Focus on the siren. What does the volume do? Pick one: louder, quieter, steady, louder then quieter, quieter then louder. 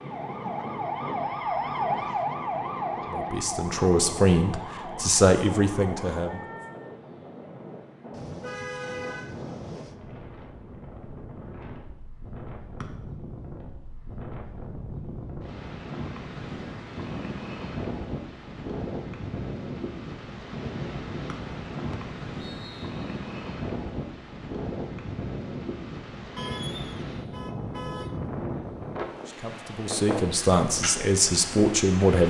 quieter.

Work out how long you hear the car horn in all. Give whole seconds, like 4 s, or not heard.
4 s.